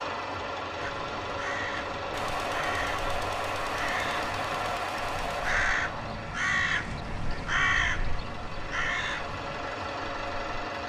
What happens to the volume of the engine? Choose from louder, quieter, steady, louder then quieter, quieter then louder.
quieter then louder.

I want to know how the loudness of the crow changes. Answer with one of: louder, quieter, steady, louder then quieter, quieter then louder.
louder.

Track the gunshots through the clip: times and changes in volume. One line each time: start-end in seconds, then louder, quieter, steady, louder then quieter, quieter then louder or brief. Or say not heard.
2.1-6.2 steady.